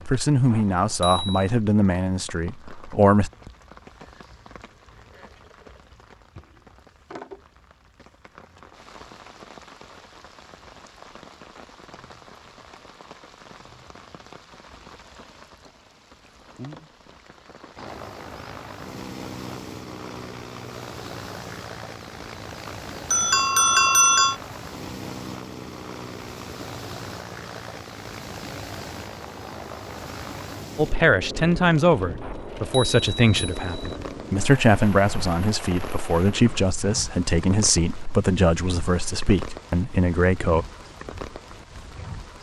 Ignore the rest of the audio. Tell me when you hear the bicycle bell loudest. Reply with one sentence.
The volume of the bicycle bell peaks at 24 seconds.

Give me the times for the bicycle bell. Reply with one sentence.
The bicycle bell can be heard from 0.5 to 1.4 s, from 22.6 to 24.4 s and from 32.2 to 34.0 s.